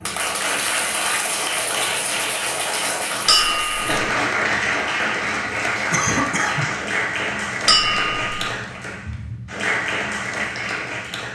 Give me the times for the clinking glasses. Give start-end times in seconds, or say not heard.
3.2-4.0, 7.7-8.4.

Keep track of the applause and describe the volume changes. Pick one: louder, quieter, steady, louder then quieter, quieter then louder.
steady.